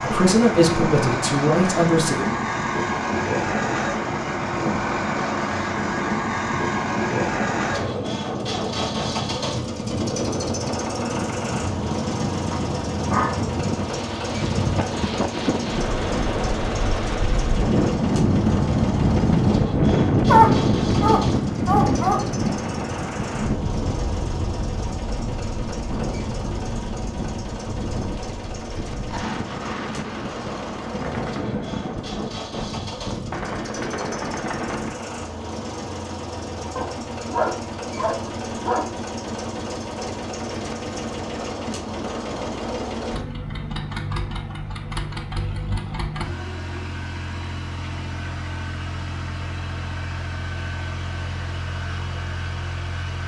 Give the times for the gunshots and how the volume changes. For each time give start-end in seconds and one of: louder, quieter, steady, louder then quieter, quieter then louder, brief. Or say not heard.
30.9-35.0 quieter then louder.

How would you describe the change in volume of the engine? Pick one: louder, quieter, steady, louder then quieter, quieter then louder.
quieter.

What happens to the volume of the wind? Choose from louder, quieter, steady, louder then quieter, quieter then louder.
louder then quieter.